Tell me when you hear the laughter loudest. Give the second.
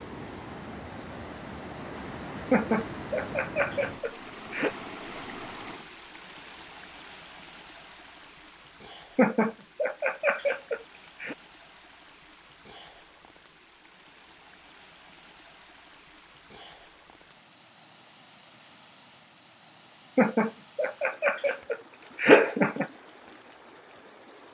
22 s.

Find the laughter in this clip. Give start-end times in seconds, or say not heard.
2.5-4.8, 9.2-11.3, 20.1-22.9.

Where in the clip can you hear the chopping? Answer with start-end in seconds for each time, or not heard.
not heard.